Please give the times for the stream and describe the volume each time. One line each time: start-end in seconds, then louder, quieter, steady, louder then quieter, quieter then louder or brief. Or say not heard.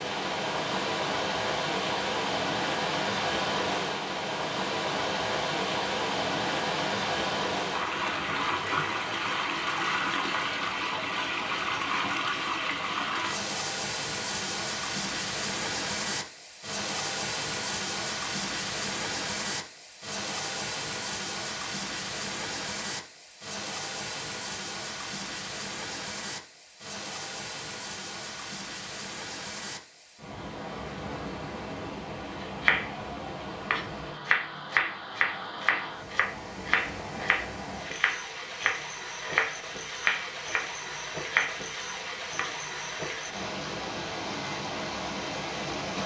0.0-46.0 quieter.